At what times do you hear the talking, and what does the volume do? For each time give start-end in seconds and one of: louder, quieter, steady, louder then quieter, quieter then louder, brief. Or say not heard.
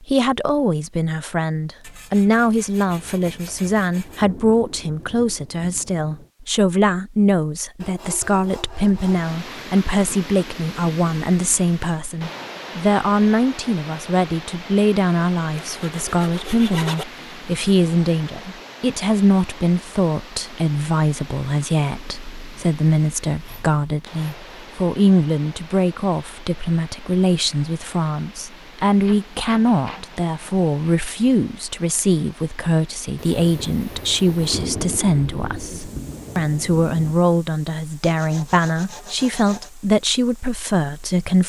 0.0-41.4 steady.